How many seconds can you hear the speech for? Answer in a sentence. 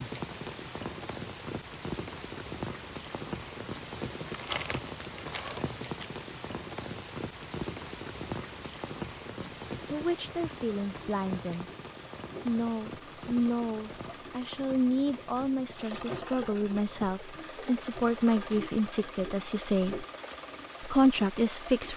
You can hear the speech for 11 seconds altogether.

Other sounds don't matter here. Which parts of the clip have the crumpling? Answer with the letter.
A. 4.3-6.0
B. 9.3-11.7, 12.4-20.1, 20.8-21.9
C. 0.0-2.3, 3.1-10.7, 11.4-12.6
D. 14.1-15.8
A.